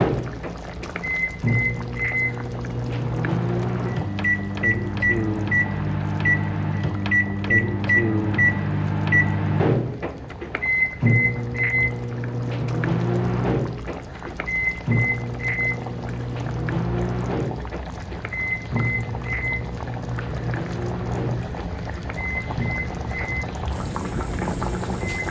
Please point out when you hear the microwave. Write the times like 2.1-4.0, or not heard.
0.0-25.2.